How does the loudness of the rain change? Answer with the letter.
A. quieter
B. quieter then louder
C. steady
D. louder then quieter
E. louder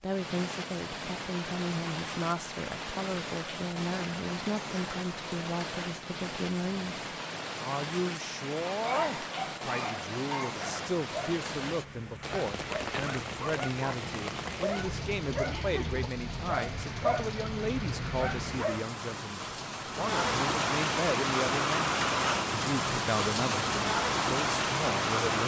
E.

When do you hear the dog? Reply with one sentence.
The dog can be heard from 8.8 to 18.9 s.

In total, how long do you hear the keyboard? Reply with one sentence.
The keyboard can't be heard in this clip.